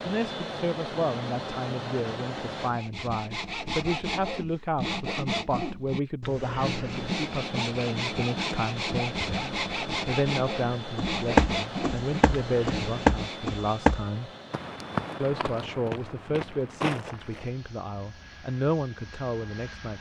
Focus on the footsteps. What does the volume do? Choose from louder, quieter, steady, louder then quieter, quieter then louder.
quieter.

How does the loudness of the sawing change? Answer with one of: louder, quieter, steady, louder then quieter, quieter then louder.
steady.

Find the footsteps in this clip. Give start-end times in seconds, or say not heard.
10.9-17.5.